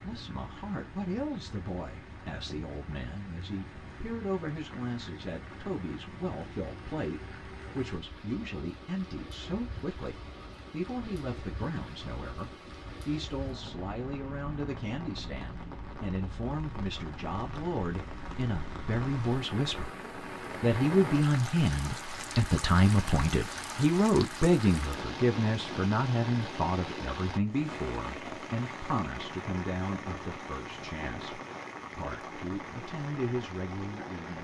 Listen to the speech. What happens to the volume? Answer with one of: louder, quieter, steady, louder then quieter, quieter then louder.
louder then quieter.